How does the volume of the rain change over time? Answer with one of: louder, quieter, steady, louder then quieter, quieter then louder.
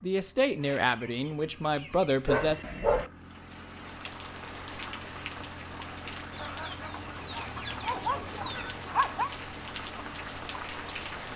steady.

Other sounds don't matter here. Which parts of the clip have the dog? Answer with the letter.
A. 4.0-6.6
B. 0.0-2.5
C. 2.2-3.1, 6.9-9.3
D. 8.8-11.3
C.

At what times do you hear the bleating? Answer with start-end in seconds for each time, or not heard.
not heard.